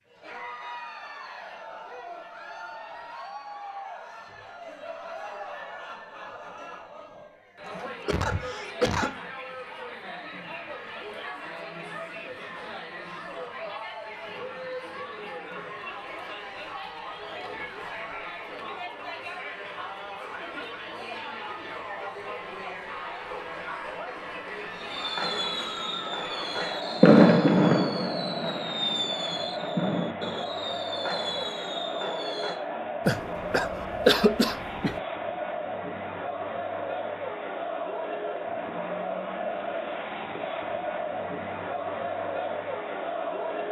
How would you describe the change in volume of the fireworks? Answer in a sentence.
The volume of the fireworks goes up, then down.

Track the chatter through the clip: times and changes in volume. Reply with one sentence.
The chatter can be heard from 0.0 to 43.6 s, getting louder.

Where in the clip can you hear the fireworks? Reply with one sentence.
The fireworks can be heard from 24.9 to 32.5 s.